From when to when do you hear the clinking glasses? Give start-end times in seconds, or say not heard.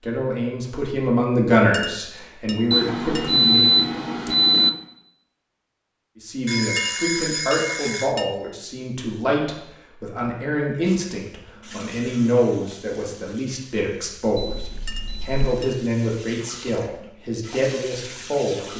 1.7-3.4, 6.8-8.3, 14.8-15.8.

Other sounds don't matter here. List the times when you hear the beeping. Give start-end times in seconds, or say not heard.
2.7-4.7, 6.5-8.2, 14.3-15.4.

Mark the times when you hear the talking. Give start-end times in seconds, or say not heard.
0.0-3.8, 6.2-18.7.